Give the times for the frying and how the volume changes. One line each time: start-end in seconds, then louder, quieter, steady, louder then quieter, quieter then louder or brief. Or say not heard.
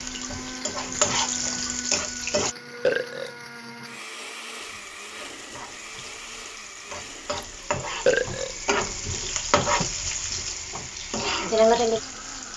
0.0-2.5 brief
4.6-12.5 louder.